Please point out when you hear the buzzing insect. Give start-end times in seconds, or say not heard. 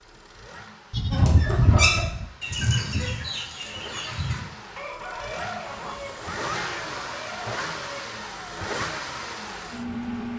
not heard.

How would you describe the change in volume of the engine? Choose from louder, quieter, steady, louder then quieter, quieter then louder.
louder.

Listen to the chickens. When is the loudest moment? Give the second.
2 s.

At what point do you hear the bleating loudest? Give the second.
2 s.